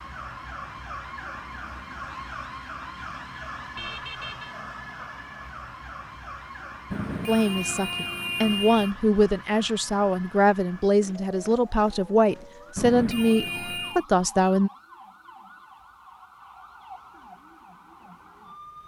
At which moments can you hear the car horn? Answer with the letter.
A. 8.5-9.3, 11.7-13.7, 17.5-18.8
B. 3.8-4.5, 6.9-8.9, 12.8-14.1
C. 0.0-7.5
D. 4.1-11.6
B.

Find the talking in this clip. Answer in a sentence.
You can hear the talking from 7.2 to 14.7 s.